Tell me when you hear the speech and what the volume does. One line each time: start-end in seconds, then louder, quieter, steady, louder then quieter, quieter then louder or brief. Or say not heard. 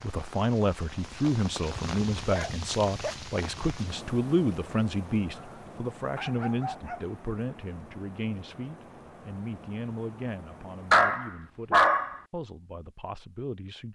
0.0-13.9 quieter.